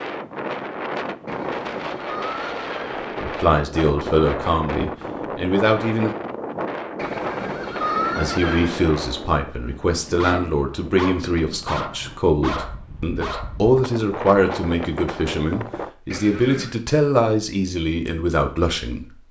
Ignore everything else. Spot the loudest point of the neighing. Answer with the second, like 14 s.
8 s.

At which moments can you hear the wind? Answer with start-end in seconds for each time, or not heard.
0.0-15.9.